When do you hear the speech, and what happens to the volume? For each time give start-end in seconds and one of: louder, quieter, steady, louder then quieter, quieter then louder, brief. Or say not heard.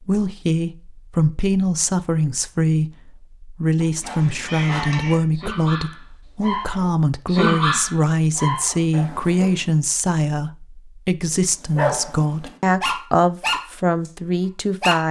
0.0-15.0 steady.